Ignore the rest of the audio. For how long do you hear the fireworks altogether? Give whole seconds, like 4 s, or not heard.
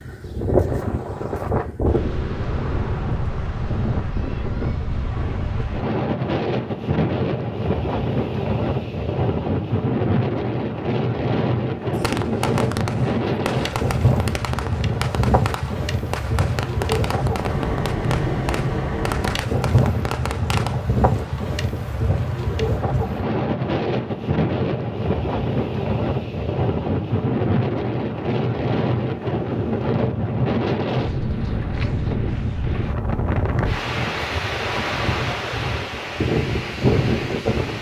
9 s.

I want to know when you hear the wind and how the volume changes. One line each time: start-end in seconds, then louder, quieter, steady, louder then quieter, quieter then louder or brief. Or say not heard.
0.0-37.7 steady.